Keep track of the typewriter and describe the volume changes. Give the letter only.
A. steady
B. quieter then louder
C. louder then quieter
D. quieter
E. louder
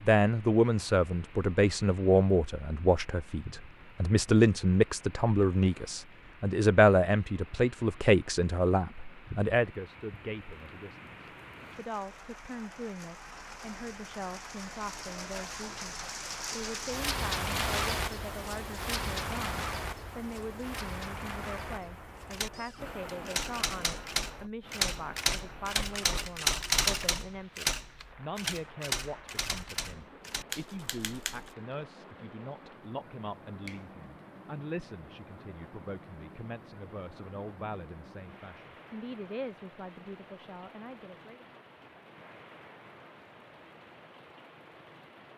C.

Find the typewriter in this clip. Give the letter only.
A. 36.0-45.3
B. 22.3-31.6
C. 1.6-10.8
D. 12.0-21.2
B.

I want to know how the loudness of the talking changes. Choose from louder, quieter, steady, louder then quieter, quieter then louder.
quieter.